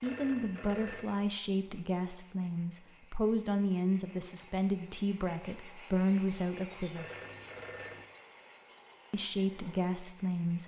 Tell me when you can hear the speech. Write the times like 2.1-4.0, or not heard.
0.0-7.1, 9.1-10.6.